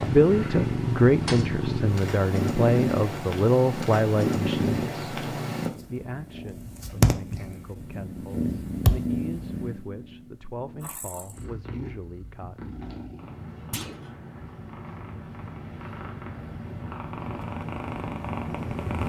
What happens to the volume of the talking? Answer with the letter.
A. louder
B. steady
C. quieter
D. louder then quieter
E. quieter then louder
C.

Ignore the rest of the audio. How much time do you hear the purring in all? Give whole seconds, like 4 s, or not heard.
19 s.